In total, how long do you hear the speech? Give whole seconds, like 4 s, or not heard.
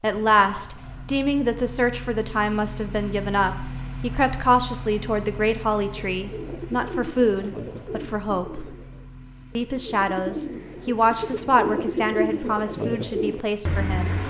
13 s.